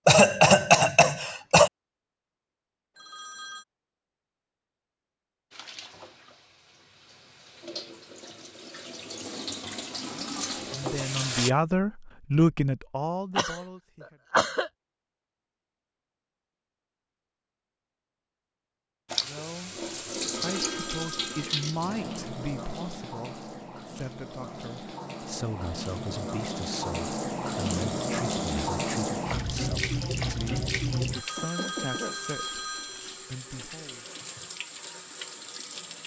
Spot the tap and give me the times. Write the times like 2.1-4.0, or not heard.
5.5-11.5, 19.1-36.0.